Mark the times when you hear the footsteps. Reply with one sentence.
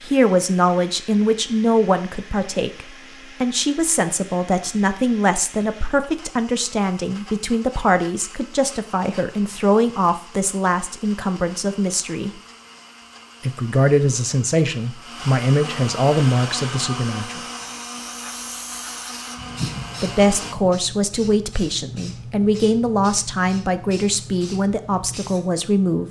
You can't hear the footsteps here.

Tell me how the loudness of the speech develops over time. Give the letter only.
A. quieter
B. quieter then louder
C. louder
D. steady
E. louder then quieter
D.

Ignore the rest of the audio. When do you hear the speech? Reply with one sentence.
You can hear the speech from 0.0 to 12.4 s, from 13.4 to 17.4 s and from 20.0 to 26.0 s.